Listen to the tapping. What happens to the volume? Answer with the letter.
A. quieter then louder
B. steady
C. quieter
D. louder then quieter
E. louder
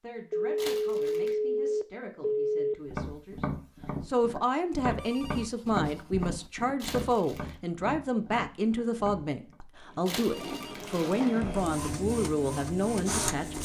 C.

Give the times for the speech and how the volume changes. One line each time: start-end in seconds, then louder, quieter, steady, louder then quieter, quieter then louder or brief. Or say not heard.
0.0-13.6 louder.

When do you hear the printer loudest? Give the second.
13 s.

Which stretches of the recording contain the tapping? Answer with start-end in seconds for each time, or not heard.
2.9-9.6.